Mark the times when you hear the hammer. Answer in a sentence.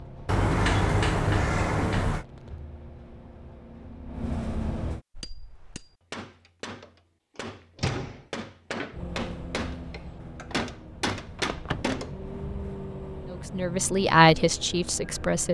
You can hear the hammer from 5.1 to 12.2 s.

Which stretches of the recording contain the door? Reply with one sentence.
The door can be heard from 0.2 to 2.2 s, from 7.8 to 8.2 s and from 11.3 to 12.0 s.